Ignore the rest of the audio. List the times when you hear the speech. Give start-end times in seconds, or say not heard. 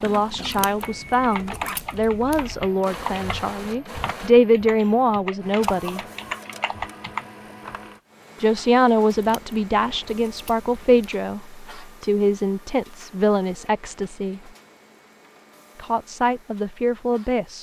0.0-6.0, 8.4-14.5, 15.8-17.5.